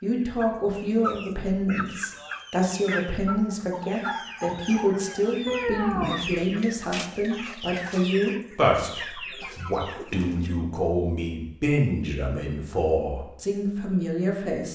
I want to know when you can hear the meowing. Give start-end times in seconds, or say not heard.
5.5-6.6.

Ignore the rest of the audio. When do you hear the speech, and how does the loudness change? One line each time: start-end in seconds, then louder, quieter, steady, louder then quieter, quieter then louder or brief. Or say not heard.
0.0-14.6 steady.